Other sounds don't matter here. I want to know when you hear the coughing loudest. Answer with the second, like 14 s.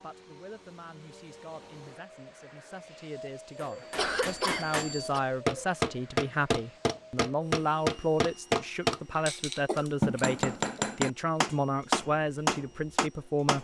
4 s.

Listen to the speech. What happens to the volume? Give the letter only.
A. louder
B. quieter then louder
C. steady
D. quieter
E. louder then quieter
A.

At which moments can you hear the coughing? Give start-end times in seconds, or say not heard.
4.0-5.2, 9.7-10.8.